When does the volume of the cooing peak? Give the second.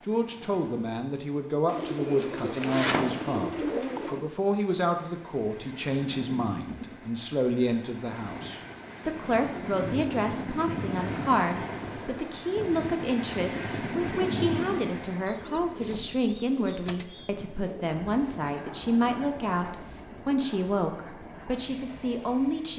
3 s.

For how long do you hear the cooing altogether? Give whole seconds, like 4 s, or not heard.
5 s.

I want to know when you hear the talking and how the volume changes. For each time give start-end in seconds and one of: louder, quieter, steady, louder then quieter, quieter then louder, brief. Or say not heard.
0.0-22.7 steady.